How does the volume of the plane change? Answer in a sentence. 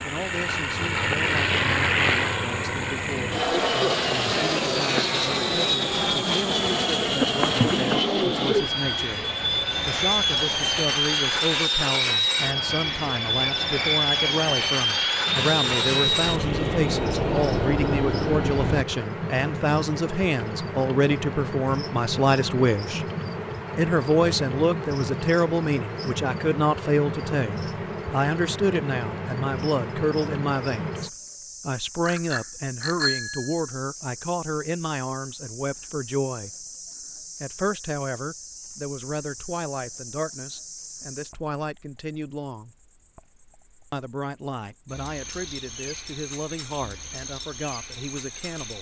The volume of the plane stays about the same.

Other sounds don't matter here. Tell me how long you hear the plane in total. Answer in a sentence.
The plane can be heard for 19 seconds in total.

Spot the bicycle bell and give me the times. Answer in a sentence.
The bicycle bell can be heard from 32.0 to 33.6 s.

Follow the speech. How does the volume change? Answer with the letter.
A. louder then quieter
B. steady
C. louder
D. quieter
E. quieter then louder
A.